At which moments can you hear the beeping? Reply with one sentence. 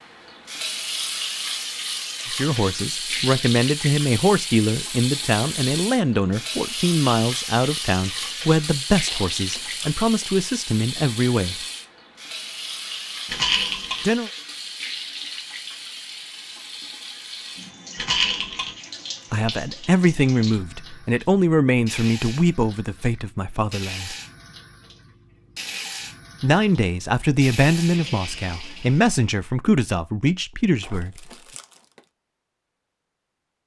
The beeping can't be heard in this clip.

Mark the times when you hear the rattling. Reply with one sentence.
The rattling can be heard from 13.2 to 14.1 s and from 17.9 to 18.7 s.